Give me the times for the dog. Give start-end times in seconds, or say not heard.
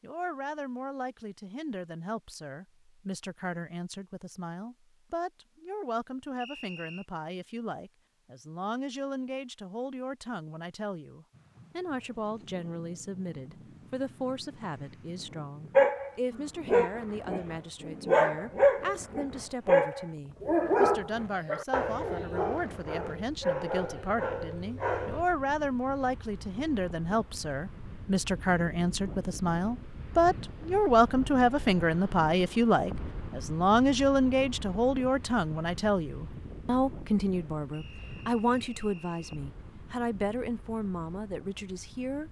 15.8-25.2.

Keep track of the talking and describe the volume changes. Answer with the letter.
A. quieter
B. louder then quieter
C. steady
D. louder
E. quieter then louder
D.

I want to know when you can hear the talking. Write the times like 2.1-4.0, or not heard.
0.0-42.2.